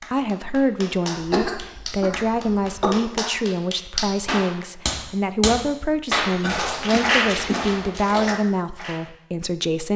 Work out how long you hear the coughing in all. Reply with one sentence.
You can hear the coughing for 3 seconds altogether.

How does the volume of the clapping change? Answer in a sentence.
The volume of the clapping goes up.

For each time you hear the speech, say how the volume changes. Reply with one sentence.
The speech can be heard from 0.1 to 9.9 s, at a steady volume.